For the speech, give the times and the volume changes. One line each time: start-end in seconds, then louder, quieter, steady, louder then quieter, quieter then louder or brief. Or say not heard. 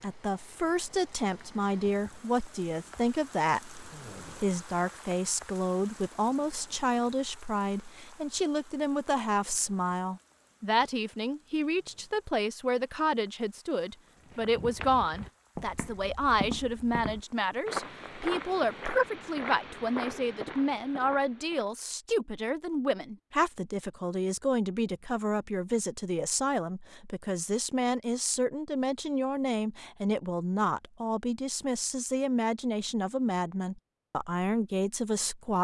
0.0-35.5 steady.